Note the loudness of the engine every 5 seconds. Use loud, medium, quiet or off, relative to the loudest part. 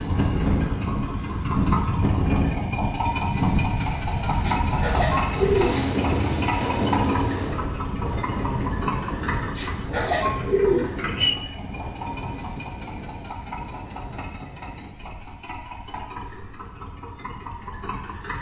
loud, loud, medium, medium.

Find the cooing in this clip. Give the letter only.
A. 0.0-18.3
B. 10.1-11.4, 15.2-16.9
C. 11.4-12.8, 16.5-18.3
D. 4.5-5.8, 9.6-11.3
D.